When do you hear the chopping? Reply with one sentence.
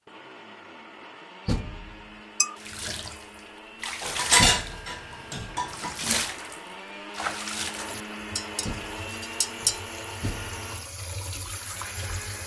You can't hear the chopping here.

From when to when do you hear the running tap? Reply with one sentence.
You can hear the running tap from 2.5 to 12.4 s.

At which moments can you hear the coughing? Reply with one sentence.
You can't hear the coughing here.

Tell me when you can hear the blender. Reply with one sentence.
You can hear the blender from 0.1 to 12.4 s.